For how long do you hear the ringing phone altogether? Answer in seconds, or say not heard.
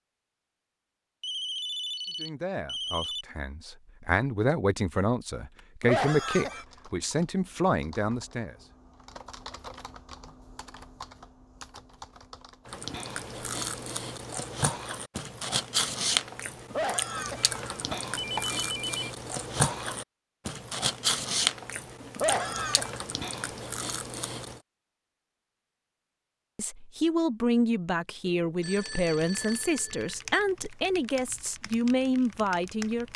5 s.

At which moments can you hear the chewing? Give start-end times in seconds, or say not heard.
12.7-24.6.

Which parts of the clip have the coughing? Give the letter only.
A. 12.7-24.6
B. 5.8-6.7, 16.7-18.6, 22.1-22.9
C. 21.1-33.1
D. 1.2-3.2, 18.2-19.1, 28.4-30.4
B.